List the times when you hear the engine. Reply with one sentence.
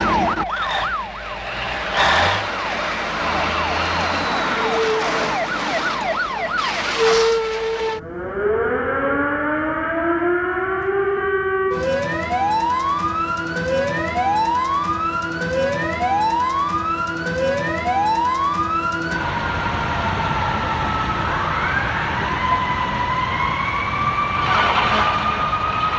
The engine can be heard from 24.3 to 25.9 s.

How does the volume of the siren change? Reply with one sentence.
The loudness of the siren stays about the same.